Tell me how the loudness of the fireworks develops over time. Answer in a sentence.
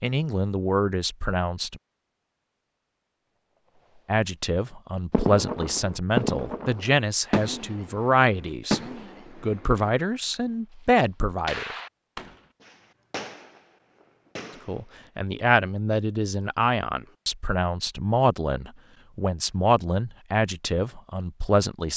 The volume of the fireworks goes down.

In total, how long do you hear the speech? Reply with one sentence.
You can hear the speech for 16 seconds altogether.